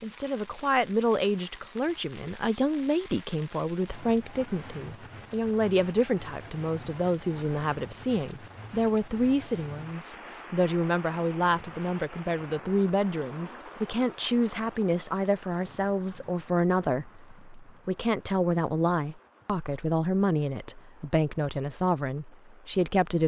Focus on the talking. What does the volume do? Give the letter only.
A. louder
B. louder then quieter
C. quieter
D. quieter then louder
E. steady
E.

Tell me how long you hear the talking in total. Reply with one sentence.
You can hear the talking for 23 seconds altogether.